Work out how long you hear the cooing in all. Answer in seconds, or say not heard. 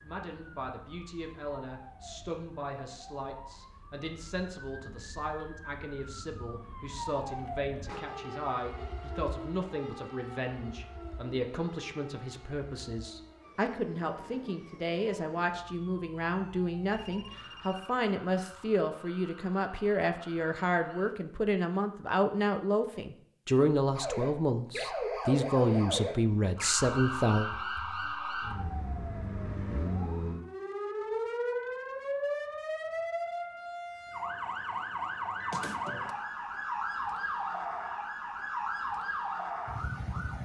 not heard.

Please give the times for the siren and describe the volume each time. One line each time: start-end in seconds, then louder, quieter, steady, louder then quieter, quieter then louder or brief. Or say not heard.
0.0-21.1 louder then quieter
23.9-40.4 steady.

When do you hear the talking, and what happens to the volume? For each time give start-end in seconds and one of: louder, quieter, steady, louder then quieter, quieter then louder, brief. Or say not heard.
0.0-27.5 louder.